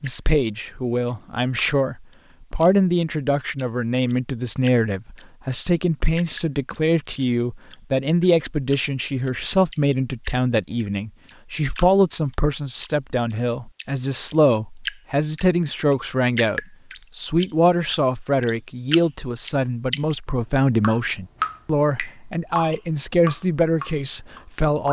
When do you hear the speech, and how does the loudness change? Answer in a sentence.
You can hear the speech from 0.0 to 24.8 s, at a steady volume.